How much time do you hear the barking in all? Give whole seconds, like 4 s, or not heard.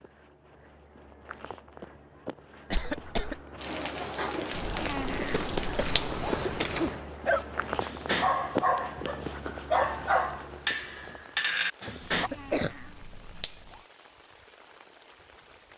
5 s.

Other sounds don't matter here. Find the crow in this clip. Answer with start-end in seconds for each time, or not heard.
not heard.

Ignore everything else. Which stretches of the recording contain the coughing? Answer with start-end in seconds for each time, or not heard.
2.7-3.4, 5.3-6.9, 11.8-12.8.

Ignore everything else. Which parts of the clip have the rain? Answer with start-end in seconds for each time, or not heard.
3.5-15.7.